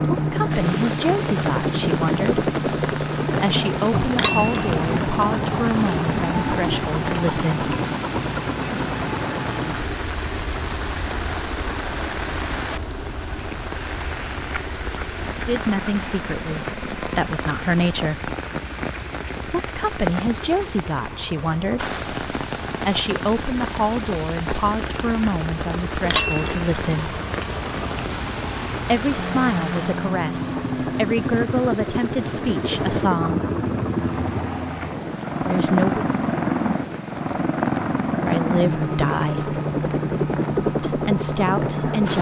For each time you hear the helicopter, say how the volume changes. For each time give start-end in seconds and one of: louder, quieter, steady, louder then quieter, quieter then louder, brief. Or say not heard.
0.0-42.1 quieter then louder.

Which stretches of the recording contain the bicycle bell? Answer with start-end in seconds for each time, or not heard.
4.1-4.7, 26.0-26.6.